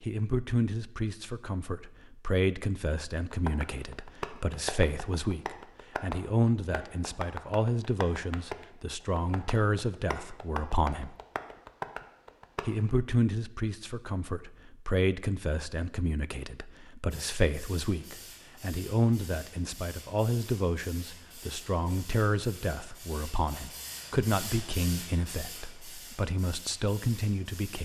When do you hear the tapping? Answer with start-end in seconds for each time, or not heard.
3.3-12.9.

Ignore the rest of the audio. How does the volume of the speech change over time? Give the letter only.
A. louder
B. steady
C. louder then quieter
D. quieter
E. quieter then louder
B.